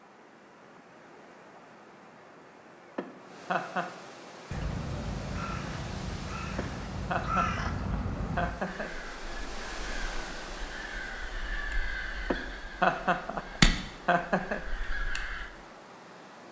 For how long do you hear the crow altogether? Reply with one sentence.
The crow can be heard for 11 seconds in total.